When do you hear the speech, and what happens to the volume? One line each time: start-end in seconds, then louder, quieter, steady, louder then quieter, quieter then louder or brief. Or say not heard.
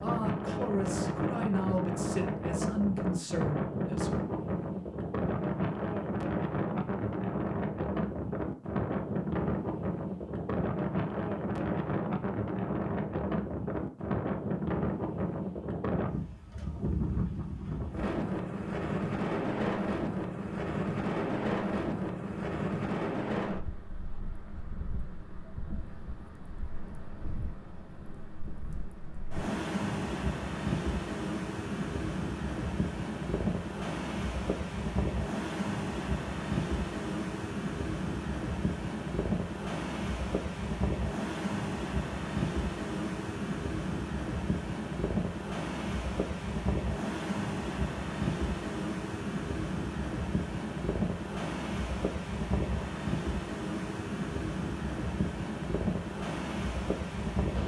0.0-4.1 steady.